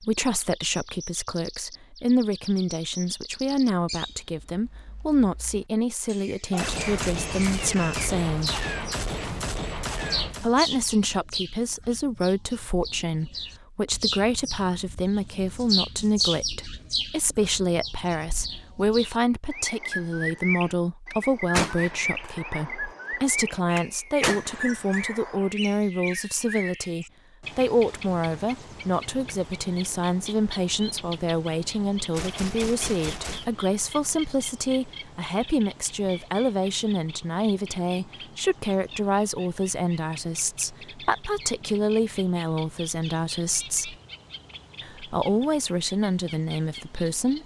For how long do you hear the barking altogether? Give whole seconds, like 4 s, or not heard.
not heard.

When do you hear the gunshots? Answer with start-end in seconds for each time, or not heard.
6.5-10.4, 21.1-25.5, 32.1-33.6.